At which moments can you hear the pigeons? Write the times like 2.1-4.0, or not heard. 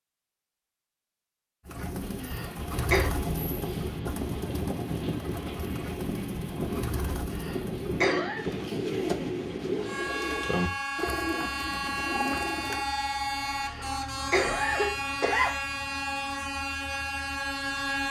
1.6-12.8.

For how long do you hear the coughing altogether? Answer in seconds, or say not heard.
4 s.